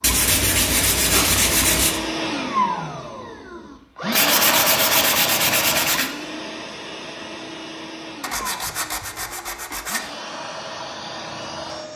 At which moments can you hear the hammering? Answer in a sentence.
The hammering can't be heard in this clip.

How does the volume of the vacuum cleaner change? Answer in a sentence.
The loudness of the vacuum cleaner goes down.